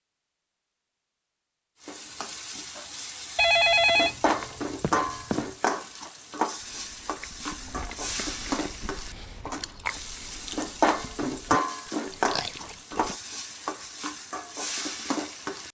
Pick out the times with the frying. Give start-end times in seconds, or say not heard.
1.8-15.6.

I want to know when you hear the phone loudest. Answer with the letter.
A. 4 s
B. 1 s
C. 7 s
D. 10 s
A.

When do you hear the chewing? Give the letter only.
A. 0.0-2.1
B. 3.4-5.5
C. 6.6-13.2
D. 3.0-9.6
C.